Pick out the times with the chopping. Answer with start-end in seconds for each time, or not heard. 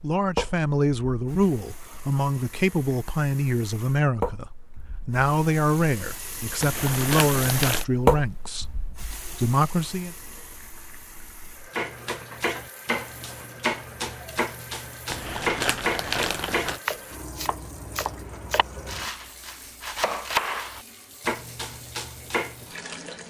11.7-22.8.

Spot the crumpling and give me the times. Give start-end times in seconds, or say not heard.
6.6-7.8, 15.1-16.8.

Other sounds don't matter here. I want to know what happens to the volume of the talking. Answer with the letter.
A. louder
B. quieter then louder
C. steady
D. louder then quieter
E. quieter
C.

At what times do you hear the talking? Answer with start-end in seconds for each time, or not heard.
0.0-10.2.